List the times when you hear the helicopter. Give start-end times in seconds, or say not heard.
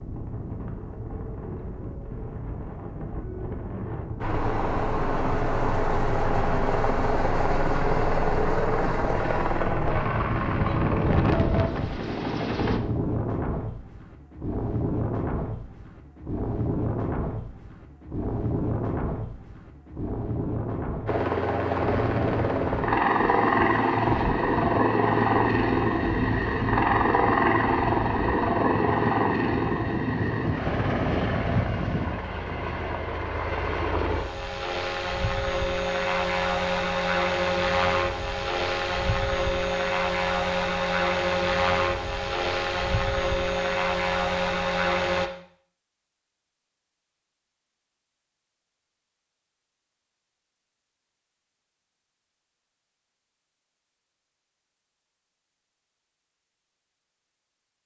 4.2-12.8, 21.1-45.3.